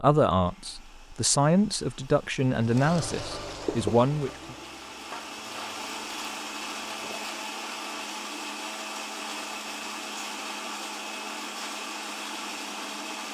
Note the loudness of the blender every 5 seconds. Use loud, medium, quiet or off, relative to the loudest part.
quiet, loud, loud.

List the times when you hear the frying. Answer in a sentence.
You can hear the frying from 2.6 to 7.5 s.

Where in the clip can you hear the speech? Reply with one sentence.
You can hear the speech from 0.0 to 4.5 s.